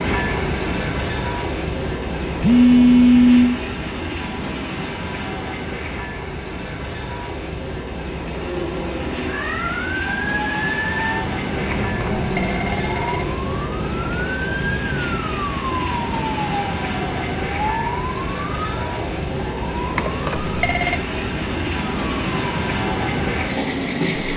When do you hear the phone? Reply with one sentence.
You can hear the phone from 2.4 to 3.6 s, from 11.7 to 13.2 s and from 19.9 to 20.9 s.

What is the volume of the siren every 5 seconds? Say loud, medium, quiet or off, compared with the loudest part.
off, loud, loud, loud, medium.